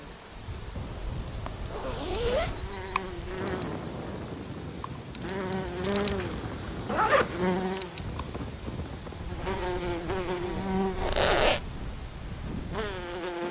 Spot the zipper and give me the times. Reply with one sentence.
You can hear the zipper from 0.8 to 2.6 s, from 6.0 to 7.4 s and from 10.9 to 11.6 s.